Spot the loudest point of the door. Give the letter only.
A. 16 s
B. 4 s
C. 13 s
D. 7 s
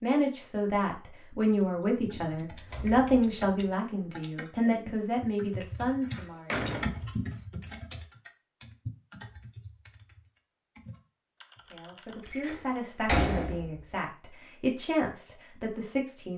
C.